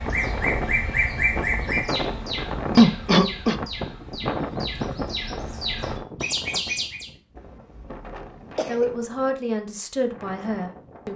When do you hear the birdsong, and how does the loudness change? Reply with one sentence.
The birdsong can be heard from 0.0 to 7.1 s, getting quieter then louder.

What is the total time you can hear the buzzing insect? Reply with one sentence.
The buzzing insect can't be heard in this clip.